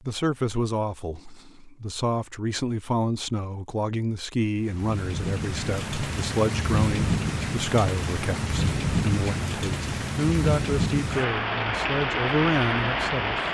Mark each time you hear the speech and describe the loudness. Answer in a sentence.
The speech can be heard from 0.0 to 13.4 s, at a steady volume.